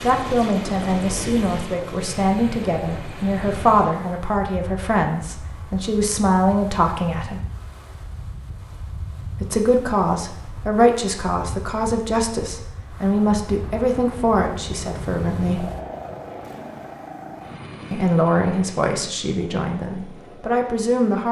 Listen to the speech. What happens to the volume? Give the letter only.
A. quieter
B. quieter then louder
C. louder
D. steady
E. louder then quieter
D.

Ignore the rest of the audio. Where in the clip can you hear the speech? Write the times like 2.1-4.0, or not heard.
0.0-7.4, 9.4-15.7, 17.9-21.2.